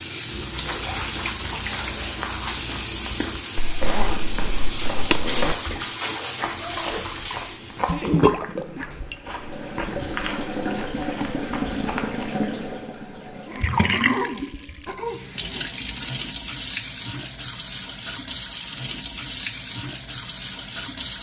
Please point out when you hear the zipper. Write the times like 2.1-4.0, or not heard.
3.5-5.5.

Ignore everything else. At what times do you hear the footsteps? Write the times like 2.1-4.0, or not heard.
0.2-12.3.